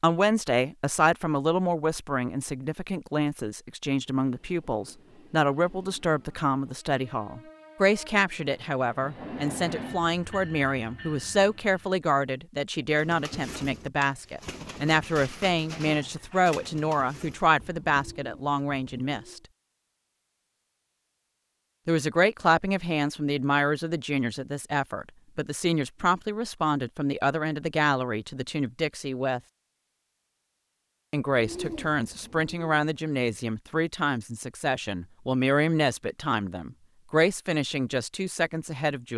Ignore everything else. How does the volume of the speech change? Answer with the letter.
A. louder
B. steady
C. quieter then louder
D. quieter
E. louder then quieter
B.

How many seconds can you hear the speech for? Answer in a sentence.
The speech can be heard for 35 seconds in total.